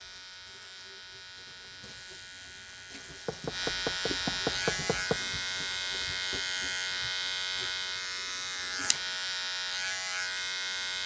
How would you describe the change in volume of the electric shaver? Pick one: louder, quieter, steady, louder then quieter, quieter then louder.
louder.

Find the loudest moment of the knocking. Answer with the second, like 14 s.
5 s.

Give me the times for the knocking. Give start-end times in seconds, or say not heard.
3.2-5.2.